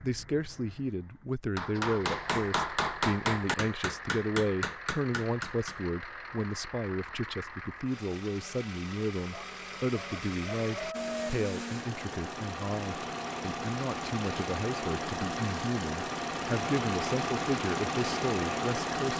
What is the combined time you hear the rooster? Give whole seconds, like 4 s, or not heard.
2 s.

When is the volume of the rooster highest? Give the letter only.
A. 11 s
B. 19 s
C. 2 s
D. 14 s
A.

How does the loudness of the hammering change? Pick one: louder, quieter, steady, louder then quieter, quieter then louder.
quieter.